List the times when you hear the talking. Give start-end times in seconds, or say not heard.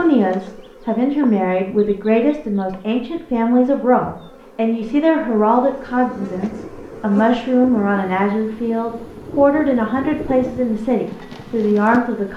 0.0-12.3.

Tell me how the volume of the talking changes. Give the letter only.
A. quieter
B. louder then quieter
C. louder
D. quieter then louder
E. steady
E.